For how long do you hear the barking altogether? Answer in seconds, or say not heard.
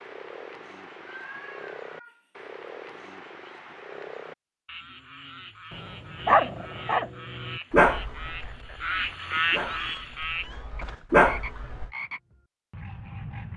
6 s.